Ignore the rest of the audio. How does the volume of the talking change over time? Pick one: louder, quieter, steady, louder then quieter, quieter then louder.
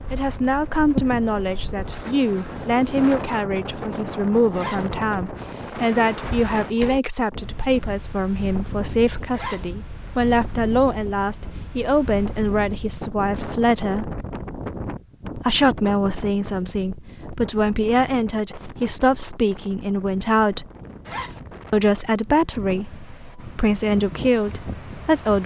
steady.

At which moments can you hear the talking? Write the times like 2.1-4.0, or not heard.
0.1-14.2, 15.3-20.6, 21.7-25.4.